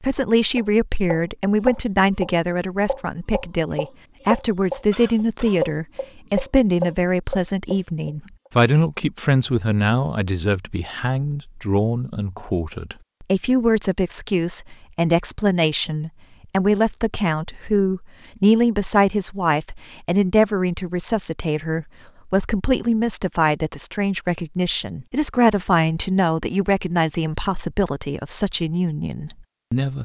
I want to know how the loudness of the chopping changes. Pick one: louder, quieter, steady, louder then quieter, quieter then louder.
quieter then louder.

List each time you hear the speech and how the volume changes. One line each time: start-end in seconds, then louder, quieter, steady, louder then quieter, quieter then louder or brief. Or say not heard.
0.0-29.9 steady.